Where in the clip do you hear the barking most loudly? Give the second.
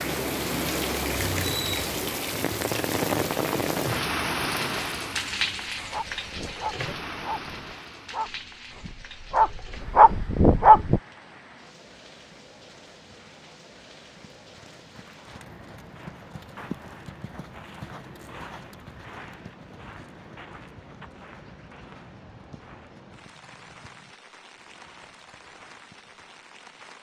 11 s.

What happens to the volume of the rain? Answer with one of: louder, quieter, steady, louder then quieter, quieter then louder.
quieter.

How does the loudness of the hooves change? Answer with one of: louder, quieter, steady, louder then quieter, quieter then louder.
quieter.